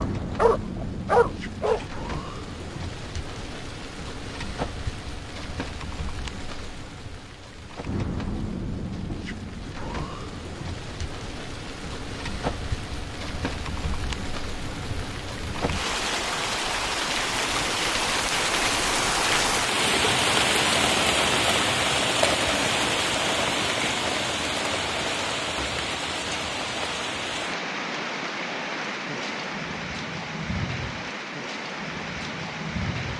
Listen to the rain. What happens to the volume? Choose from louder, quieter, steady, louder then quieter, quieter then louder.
louder then quieter.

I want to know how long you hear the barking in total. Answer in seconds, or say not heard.
2 s.